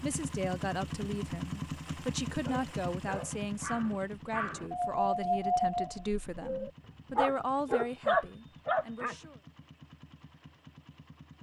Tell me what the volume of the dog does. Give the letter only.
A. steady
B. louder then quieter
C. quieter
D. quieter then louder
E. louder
E.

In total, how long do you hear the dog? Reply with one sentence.
The dog can be heard for 7 seconds in total.